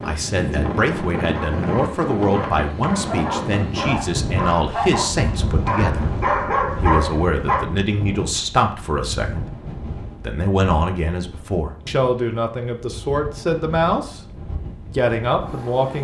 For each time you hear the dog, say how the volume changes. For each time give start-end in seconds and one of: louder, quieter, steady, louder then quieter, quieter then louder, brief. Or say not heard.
1.2-7.7 louder.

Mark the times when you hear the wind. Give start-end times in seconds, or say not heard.
0.0-15.9.